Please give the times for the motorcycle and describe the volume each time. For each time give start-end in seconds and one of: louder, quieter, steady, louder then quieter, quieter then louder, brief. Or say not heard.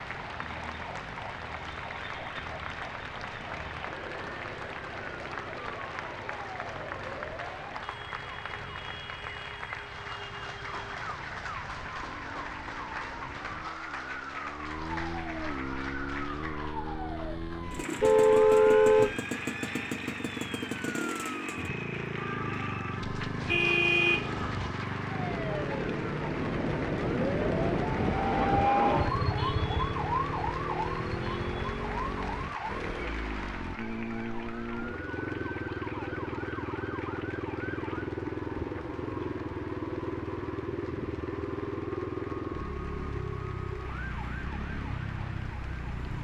0.0-46.1 louder.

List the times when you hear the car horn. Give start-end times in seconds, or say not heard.
18.0-19.1, 23.4-24.8.